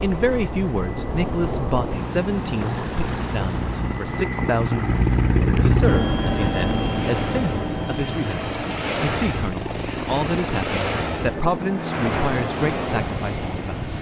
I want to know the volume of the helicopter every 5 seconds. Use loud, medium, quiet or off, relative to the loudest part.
medium, loud, medium.